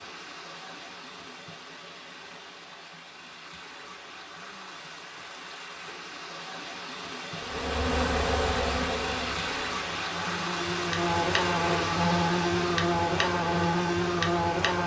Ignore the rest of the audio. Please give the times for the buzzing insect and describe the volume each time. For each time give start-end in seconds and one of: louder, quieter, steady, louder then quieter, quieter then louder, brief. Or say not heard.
7.4-14.8 quieter then louder.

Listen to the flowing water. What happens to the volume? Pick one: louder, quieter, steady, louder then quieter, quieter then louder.
louder.